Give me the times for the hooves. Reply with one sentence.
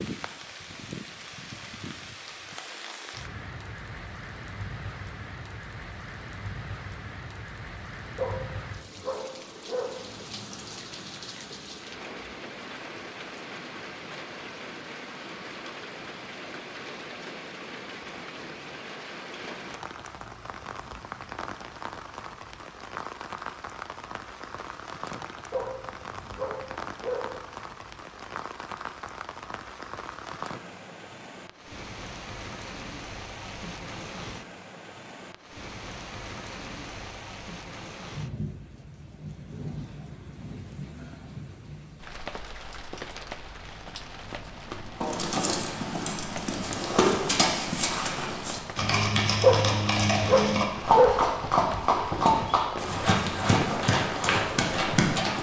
The hooves can be heard from 45.0 to 55.3 s.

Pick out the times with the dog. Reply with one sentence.
You can hear the dog from 8.2 to 9.9 s, from 25.5 to 27.3 s and from 49.4 to 51.2 s.